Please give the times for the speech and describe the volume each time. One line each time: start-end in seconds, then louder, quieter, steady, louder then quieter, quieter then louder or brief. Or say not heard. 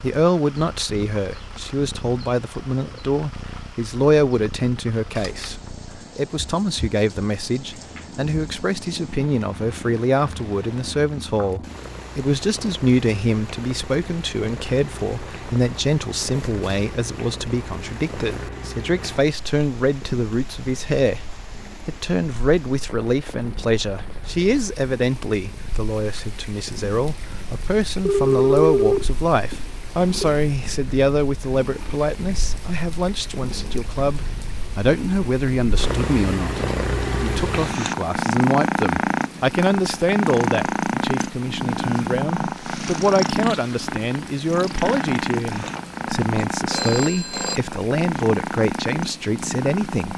0.0-50.1 steady.